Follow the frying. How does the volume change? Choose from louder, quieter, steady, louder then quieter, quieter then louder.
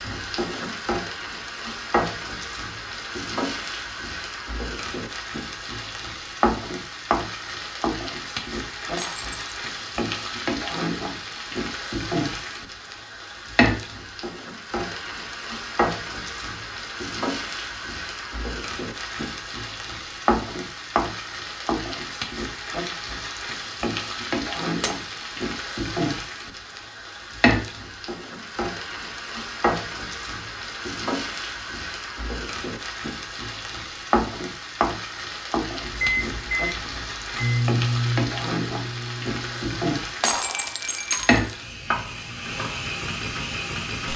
steady.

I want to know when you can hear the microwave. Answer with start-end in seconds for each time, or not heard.
35.7-39.9.